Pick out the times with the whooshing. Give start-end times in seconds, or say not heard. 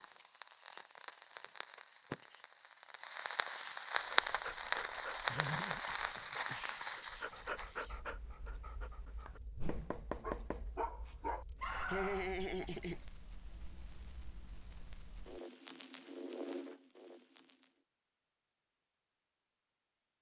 9.6-10.1.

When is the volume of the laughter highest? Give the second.
12 s.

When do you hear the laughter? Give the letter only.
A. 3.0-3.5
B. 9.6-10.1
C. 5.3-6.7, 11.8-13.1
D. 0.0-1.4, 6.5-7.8
C.